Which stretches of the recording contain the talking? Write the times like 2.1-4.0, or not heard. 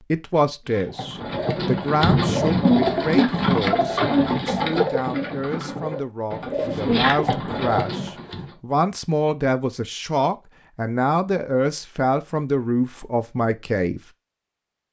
0.1-14.0.